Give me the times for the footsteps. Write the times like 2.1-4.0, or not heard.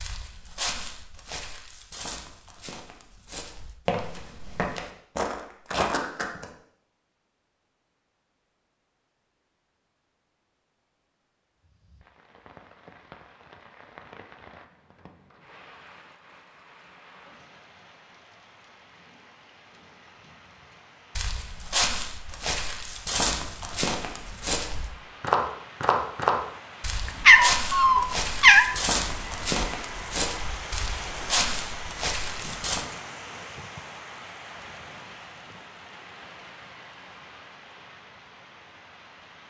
0.0-6.5, 21.1-32.9.